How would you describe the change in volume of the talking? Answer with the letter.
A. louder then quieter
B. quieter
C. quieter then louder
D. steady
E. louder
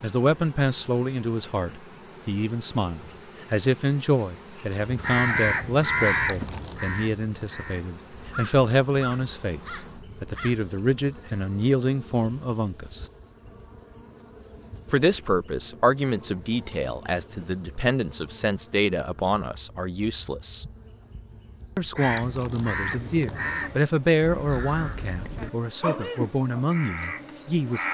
D.